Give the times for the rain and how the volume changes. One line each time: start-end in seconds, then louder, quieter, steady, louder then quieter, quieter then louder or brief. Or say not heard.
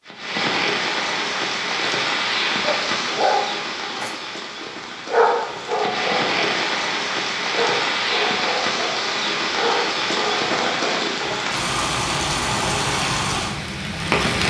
0.0-14.4 quieter then louder.